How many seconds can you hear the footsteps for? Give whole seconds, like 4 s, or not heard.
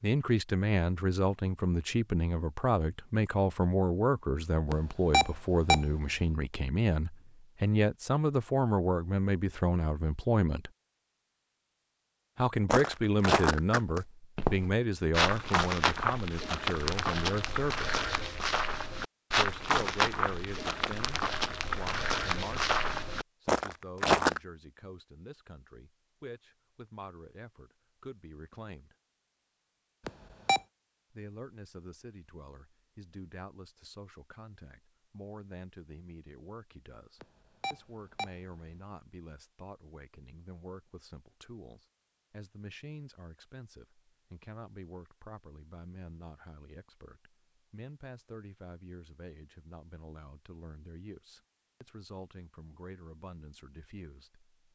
12 s.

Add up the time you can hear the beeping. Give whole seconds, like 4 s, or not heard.
4 s.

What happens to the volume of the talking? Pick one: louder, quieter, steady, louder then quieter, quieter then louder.
quieter.